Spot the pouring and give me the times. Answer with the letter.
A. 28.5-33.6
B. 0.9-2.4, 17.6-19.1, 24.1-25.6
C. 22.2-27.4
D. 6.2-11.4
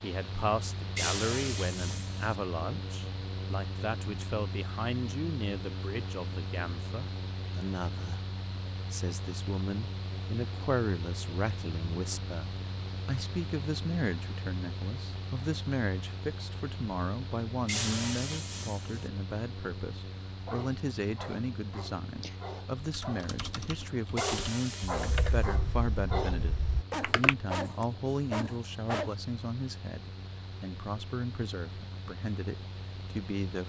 B.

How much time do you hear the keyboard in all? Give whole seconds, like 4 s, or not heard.
5 s.